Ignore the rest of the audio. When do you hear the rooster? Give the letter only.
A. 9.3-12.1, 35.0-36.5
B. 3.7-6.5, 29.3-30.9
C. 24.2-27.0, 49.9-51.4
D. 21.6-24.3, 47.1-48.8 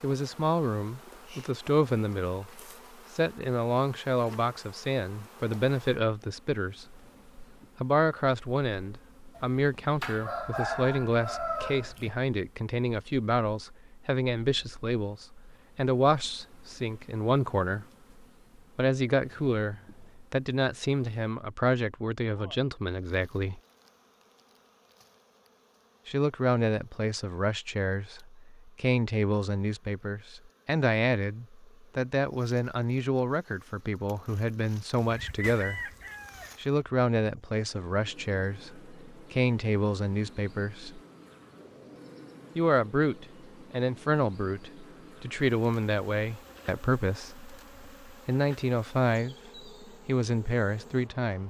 A.